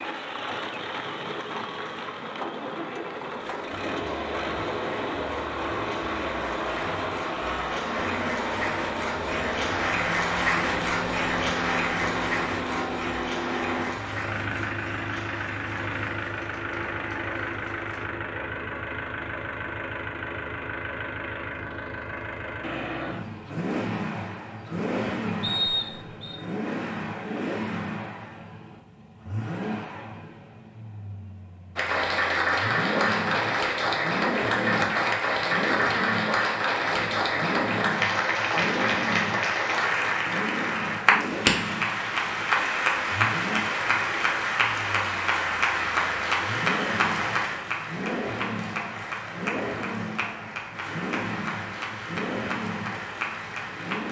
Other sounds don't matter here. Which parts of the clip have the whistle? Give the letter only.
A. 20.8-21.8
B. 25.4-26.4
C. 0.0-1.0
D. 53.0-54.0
B.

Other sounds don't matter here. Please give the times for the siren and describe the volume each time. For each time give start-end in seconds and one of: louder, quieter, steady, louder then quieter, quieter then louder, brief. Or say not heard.
not heard.